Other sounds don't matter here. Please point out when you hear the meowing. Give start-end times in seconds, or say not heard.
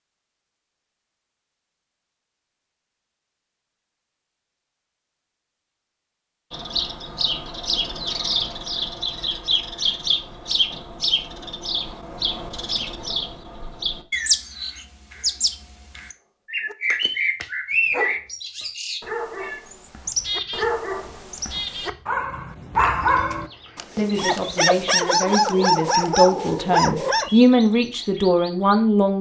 not heard.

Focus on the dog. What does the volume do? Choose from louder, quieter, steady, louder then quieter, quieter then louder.
louder.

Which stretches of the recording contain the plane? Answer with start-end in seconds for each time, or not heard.
not heard.